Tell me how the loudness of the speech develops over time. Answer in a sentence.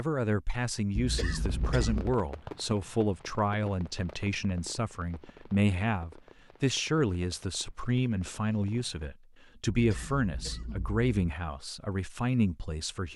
The volume of the speech stays about the same.